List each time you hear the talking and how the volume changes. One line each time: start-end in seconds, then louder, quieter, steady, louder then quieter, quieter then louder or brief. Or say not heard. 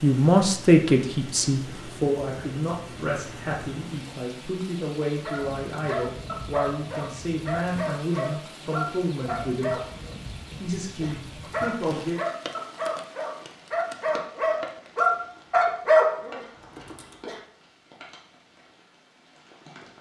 0.0-9.8 quieter
10.6-12.2 brief.